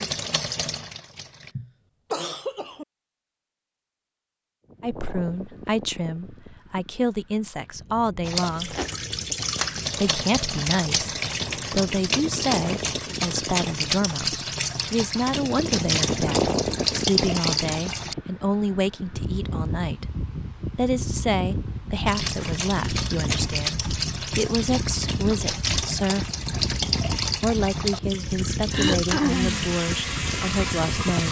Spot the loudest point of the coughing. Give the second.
29 s.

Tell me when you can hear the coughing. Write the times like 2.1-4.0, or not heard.
1.2-2.9, 28.7-29.6.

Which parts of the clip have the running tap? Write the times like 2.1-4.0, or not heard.
0.0-1.6, 8.2-18.1, 22.1-31.2.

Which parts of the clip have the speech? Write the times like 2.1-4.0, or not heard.
4.8-8.8, 9.9-20.1, 20.8-26.3, 27.4-31.2.